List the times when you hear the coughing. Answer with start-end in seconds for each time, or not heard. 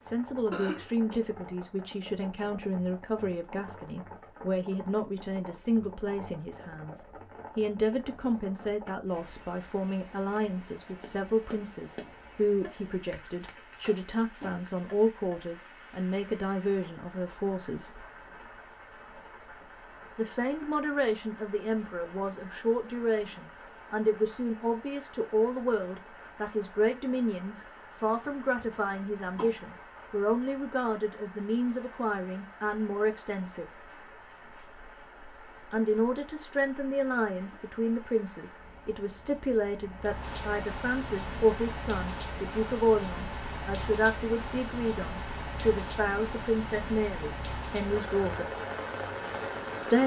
0.5-1.1, 28.2-29.6.